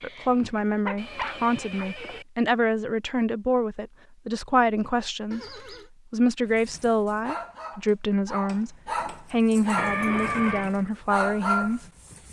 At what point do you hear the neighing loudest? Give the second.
10 s.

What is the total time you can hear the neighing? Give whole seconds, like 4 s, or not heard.
3 s.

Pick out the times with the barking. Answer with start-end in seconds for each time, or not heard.
0.0-1.9, 6.5-12.2.